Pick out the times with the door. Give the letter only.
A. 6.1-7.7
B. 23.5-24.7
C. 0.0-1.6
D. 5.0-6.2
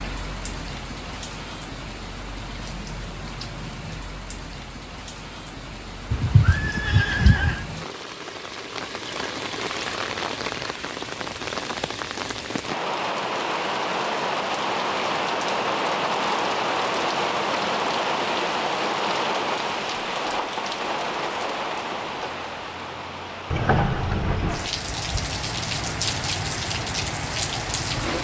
B.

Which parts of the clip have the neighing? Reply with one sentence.
You can hear the neighing from 6.1 to 7.7 s.